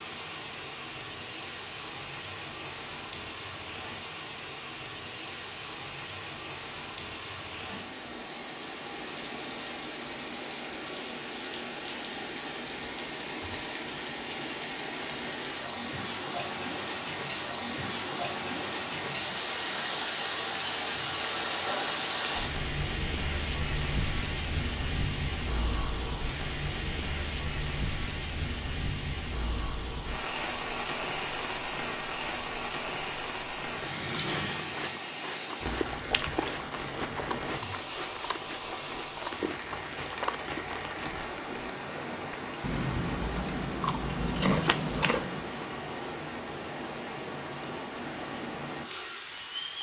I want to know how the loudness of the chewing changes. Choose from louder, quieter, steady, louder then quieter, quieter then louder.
louder.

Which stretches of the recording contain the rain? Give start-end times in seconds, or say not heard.
0.0-49.7.